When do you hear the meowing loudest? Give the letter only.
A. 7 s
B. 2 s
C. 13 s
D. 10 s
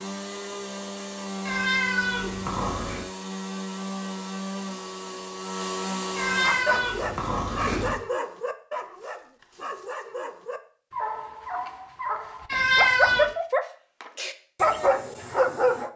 C.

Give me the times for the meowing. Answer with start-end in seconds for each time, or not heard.
1.4-3.0, 6.2-8.0, 12.4-13.3.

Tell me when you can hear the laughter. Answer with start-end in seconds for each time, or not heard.
not heard.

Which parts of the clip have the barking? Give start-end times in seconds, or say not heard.
6.4-15.9.